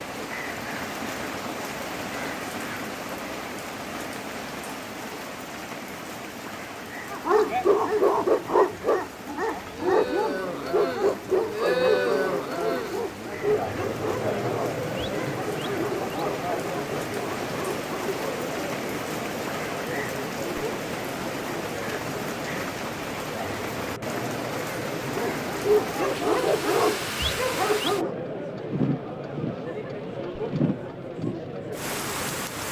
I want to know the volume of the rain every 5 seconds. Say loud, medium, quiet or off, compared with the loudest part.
loud, medium, medium, loud, loud, loud, loud.